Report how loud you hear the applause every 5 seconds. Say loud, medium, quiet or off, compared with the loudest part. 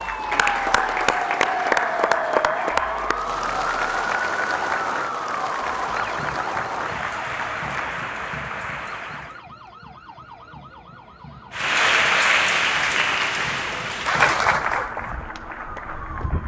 loud, medium, loud, quiet.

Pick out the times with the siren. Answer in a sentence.
You can hear the siren from 0.0 to 16.4 s.